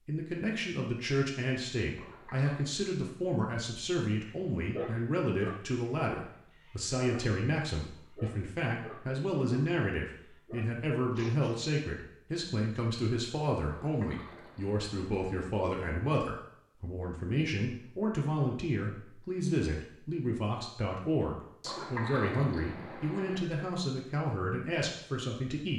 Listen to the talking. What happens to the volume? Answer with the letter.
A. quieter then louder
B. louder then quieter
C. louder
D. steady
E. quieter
D.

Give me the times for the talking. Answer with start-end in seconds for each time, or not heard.
0.1-25.7.